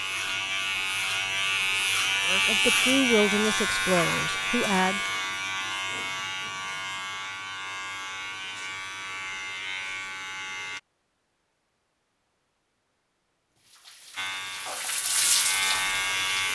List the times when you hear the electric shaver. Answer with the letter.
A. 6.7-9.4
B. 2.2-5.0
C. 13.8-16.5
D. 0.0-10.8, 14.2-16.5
D.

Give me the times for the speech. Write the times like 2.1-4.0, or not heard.
2.2-5.0.